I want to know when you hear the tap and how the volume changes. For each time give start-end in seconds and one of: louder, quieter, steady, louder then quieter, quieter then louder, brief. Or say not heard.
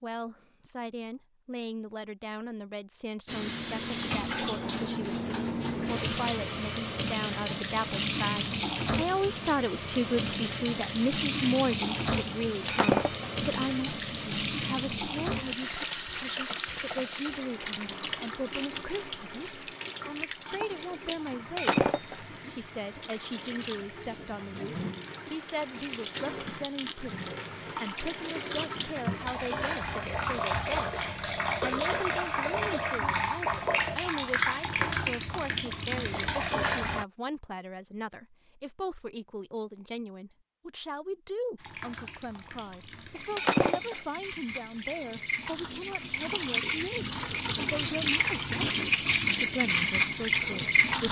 3.2-37.0 quieter then louder
41.5-51.0 louder.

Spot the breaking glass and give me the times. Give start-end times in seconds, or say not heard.
12.7-13.4, 21.6-22.4, 43.4-44.2.